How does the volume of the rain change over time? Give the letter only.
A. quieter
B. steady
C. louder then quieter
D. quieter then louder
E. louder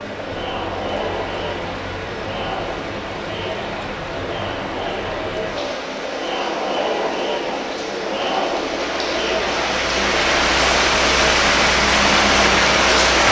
E.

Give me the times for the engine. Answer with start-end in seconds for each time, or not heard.
9.6-13.2.